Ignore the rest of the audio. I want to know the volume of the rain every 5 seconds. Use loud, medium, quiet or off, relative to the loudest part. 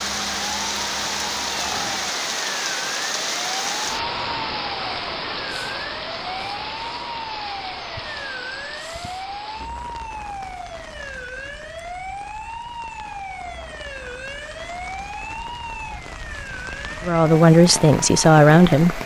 loud, medium, quiet, medium.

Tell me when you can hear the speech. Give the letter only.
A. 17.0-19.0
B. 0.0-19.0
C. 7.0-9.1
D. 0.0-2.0
A.